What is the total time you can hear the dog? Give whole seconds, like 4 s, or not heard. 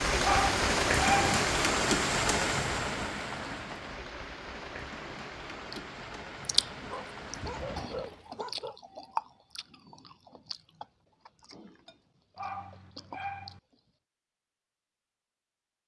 4 s.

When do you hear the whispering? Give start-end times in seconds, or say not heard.
not heard.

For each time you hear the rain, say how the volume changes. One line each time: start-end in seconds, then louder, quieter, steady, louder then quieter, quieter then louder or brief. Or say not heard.
0.0-8.3 quieter.